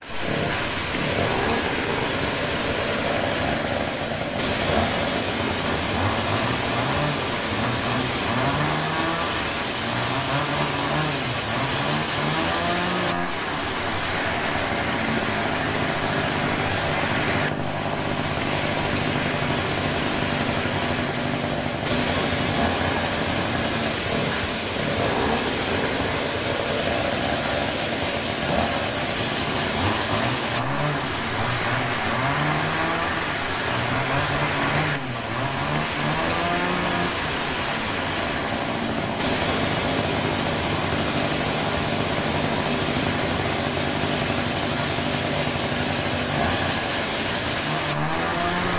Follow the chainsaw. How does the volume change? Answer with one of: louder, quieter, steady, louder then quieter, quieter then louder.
steady.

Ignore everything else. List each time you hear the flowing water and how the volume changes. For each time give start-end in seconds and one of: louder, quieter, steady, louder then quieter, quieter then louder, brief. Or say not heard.
0.0-48.7 steady.